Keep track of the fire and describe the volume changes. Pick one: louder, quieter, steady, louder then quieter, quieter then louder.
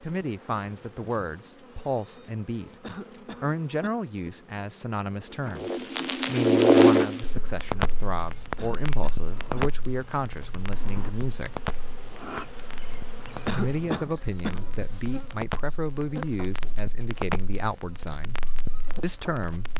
quieter.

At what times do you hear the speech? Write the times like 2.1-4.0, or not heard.
0.0-11.6, 13.5-18.4, 19.0-19.7.